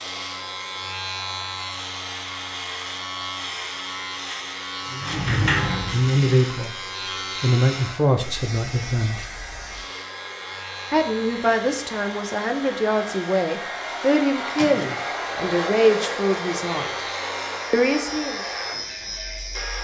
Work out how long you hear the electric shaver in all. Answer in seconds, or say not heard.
20 s.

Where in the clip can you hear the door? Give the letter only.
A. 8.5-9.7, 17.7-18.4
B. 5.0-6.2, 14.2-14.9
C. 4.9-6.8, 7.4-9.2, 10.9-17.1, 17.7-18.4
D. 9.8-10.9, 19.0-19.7
B.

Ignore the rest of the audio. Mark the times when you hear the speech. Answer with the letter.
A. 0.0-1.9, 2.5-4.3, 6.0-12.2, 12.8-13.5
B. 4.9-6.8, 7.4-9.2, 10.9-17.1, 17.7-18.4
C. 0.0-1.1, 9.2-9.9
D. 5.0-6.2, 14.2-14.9
B.